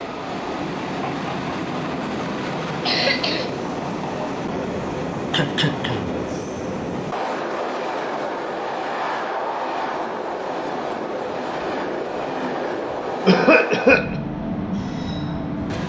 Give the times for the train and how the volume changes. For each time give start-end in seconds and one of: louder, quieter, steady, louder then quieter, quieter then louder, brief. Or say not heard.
0.0-15.8 steady.